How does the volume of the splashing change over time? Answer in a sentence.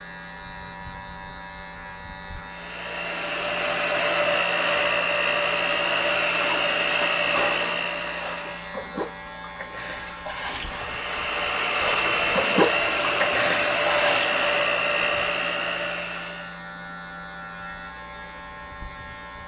The volume of the splashing goes up.